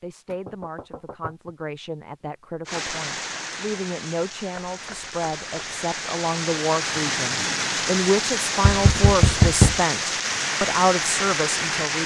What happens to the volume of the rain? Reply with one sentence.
The loudness of the rain goes up.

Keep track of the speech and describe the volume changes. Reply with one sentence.
The loudness of the speech goes up.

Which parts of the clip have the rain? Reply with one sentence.
The rain can be heard from 2.6 to 12.0 s.